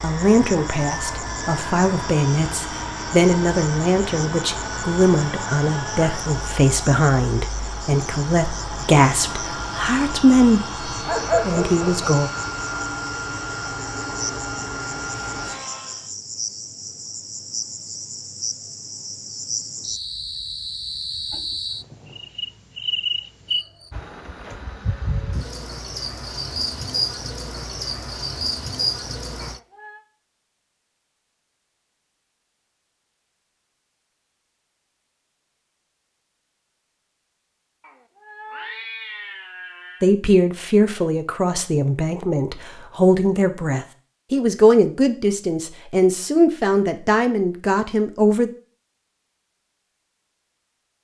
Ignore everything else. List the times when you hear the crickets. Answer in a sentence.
You can hear the crickets from 0.0 to 29.6 s.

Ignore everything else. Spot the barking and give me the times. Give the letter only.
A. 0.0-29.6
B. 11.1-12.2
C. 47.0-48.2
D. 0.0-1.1
B.